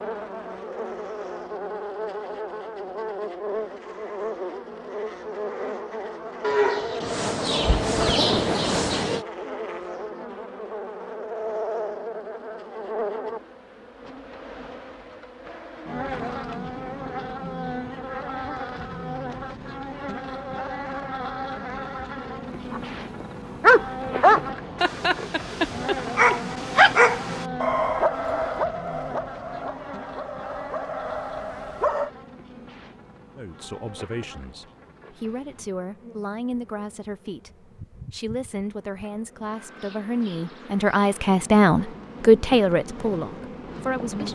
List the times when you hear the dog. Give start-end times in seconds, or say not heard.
22.7-32.1.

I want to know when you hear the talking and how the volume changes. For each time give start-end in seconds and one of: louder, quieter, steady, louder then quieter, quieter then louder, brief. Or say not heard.
33.4-44.3 louder.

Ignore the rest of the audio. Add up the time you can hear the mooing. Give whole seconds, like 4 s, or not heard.
3 s.